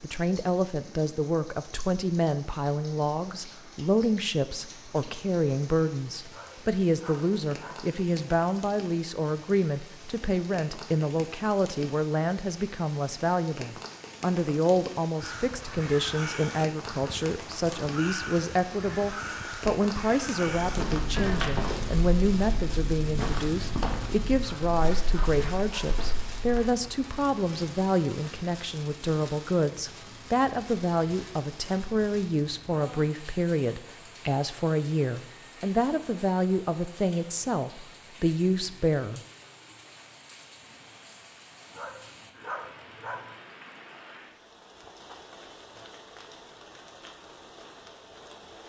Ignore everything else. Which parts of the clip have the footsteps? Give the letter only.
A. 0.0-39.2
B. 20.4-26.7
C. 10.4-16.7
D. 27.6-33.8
B.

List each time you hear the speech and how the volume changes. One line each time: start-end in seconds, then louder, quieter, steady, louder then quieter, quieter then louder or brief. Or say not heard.
0.0-39.2 steady.